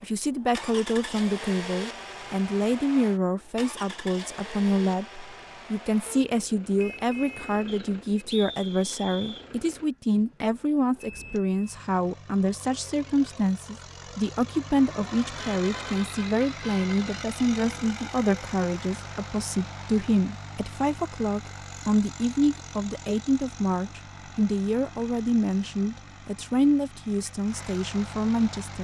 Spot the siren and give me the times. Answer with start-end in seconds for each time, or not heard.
not heard.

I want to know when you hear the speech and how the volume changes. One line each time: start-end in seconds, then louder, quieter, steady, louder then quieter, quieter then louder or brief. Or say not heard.
0.0-28.7 steady.